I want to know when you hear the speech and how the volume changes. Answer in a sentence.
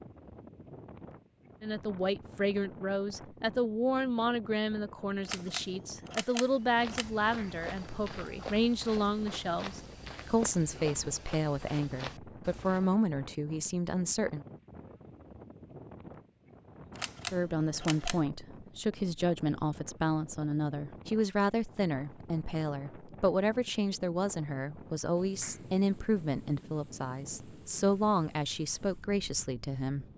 The speech can be heard from 1.6 to 14.4 s, at a steady volume; and from 17.3 to 30.1 s, at a steady volume.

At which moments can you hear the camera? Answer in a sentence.
You can hear the camera from 5.2 to 7.1 s and from 16.9 to 18.2 s.